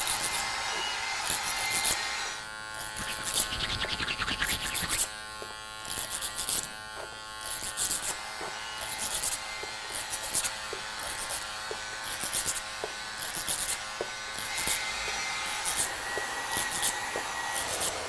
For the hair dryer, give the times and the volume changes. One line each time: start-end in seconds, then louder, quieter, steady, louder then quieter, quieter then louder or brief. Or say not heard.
0.0-2.5 brief
8.0-18.0 louder.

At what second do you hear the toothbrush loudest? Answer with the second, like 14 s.
4 s.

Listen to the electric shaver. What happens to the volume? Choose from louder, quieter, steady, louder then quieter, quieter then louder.
steady.